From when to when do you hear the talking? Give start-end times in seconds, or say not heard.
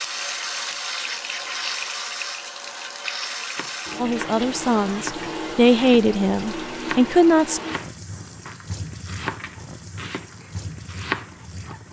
4.0-7.6.